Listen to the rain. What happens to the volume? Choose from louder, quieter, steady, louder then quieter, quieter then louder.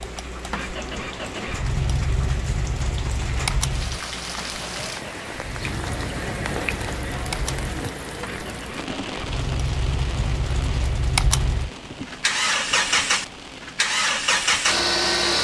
louder then quieter.